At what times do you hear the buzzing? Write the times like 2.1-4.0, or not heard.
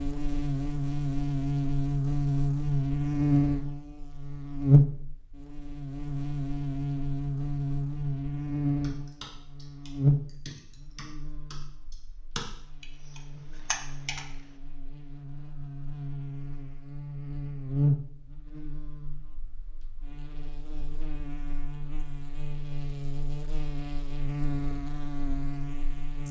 0.0-26.2.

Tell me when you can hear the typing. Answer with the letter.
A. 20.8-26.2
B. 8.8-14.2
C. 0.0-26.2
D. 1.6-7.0
B.